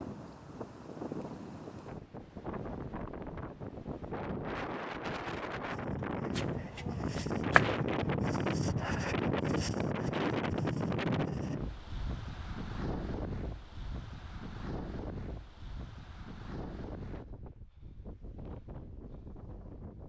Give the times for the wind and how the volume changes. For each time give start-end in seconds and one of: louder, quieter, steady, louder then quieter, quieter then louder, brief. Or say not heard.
0.0-20.0 louder then quieter.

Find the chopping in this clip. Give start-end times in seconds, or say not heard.
6.3-7.8.